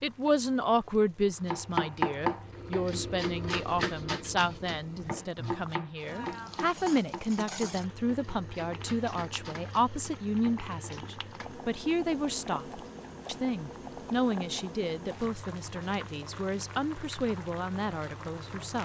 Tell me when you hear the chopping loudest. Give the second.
2 s.